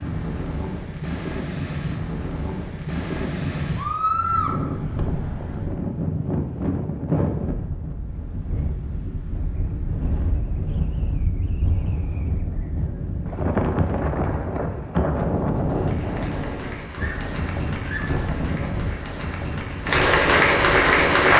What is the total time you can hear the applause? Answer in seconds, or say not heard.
6 s.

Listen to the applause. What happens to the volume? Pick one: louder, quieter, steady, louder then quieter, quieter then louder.
louder.